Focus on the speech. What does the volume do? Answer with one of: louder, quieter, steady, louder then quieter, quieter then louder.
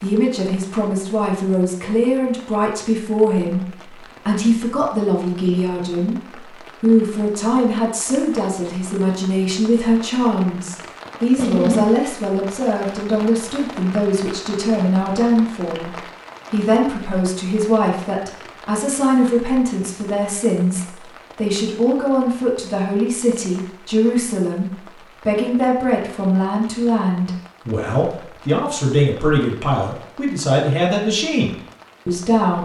steady.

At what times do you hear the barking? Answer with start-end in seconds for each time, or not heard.
11.3-11.9.